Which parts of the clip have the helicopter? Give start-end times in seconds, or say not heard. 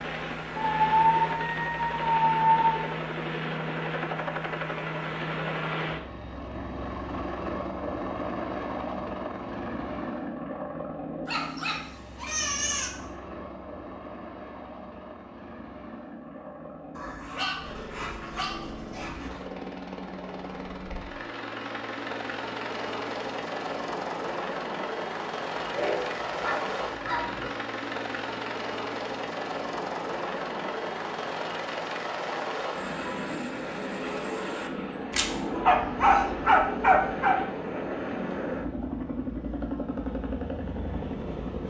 0.0-41.6.